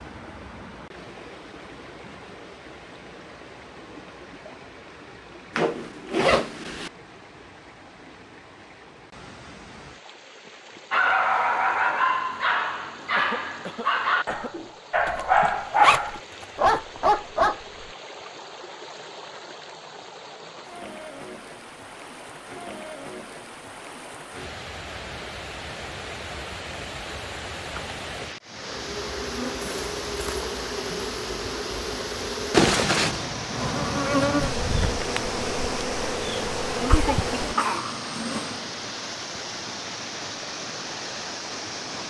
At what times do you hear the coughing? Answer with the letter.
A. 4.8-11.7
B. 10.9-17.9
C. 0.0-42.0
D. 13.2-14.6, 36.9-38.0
D.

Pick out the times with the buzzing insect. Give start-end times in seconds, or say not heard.
28.5-38.7.